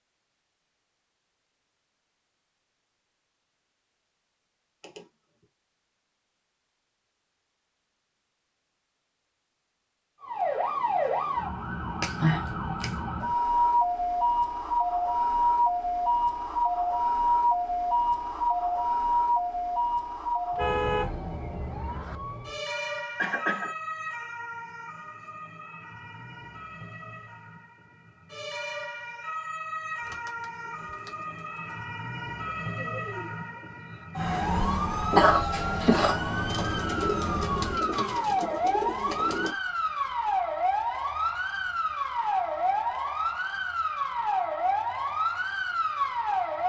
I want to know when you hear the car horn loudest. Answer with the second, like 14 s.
21 s.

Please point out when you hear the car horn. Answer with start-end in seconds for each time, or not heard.
20.5-22.1.